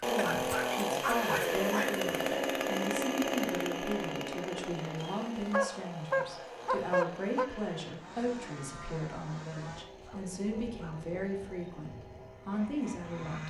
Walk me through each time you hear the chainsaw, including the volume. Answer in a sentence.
The chainsaw can be heard from 0.0 to 13.4 s, getting quieter.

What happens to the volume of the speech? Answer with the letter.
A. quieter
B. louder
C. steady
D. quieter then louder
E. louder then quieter
C.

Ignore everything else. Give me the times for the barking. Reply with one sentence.
You can hear the barking from 0.1 to 2.0 s, from 5.0 to 7.5 s and from 10.0 to 11.2 s.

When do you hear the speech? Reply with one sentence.
You can hear the speech from 0.0 to 13.4 s.